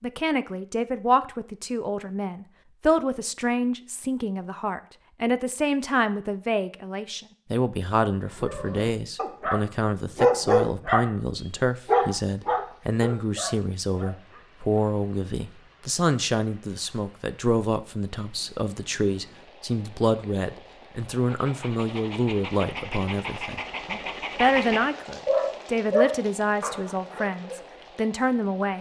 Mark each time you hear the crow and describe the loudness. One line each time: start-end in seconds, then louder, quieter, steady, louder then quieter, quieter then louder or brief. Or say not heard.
not heard.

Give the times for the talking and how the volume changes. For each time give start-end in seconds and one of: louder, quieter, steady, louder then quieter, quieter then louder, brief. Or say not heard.
0.0-28.7 steady.